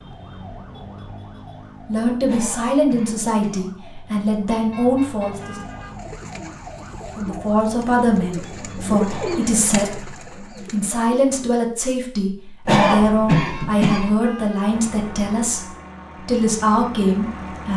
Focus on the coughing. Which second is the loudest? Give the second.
13 s.